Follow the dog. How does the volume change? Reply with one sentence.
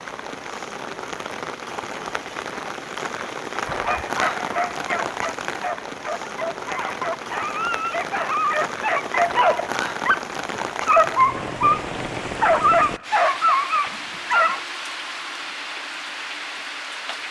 The volume of the dog goes up.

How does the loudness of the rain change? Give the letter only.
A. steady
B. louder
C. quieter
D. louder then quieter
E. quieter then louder
A.